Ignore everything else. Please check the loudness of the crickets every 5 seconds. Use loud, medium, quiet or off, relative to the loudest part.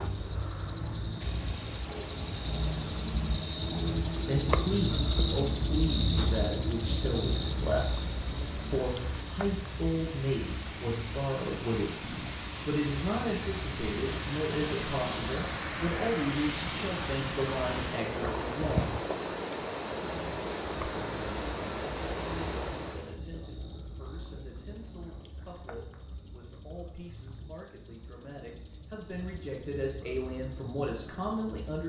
loud, loud, quiet, quiet, quiet, quiet, quiet.